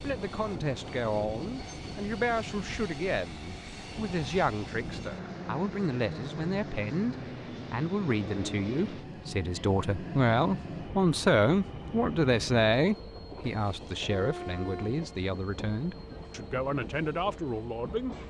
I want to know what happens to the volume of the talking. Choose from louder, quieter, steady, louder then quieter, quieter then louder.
louder then quieter.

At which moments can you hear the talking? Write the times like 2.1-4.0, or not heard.
0.0-18.1.